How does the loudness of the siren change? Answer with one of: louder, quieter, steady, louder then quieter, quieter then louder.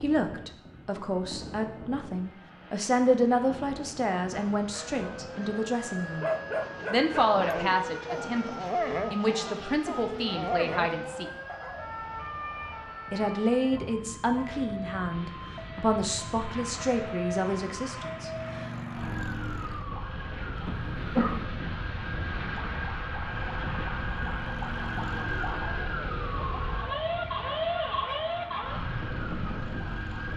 louder.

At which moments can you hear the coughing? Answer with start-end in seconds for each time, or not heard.
20.6-21.4.